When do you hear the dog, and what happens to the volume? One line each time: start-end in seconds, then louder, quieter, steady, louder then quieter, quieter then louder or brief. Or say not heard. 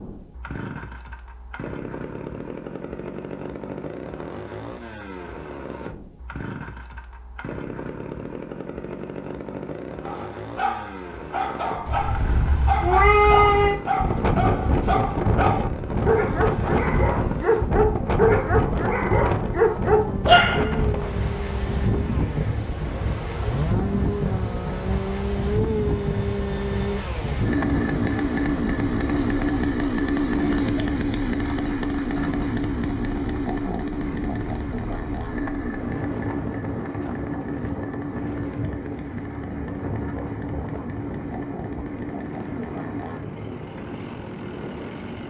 10.1-20.8 louder.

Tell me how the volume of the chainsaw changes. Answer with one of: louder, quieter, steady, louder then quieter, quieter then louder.
louder then quieter.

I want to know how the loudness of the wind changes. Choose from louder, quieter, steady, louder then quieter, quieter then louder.
quieter.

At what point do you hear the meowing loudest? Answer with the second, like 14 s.
13 s.